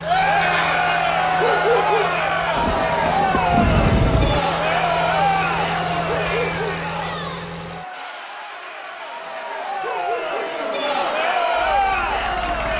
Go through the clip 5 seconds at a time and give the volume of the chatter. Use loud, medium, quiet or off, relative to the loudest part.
loud, medium, loud.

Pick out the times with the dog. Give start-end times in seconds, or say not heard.
1.4-2.1, 6.0-6.8, 9.8-10.6.